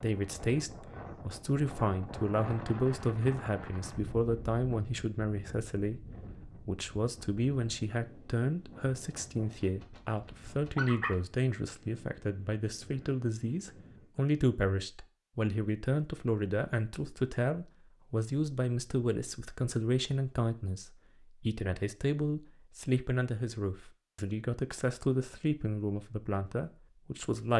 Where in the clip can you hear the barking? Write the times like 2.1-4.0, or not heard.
9.5-11.2.